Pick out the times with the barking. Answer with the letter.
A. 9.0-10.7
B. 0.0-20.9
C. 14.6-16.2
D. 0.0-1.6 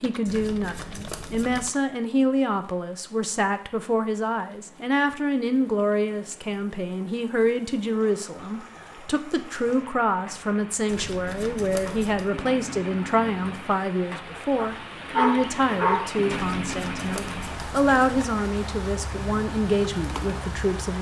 C.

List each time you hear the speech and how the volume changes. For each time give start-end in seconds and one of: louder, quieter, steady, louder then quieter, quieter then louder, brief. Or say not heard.
0.0-20.9 steady.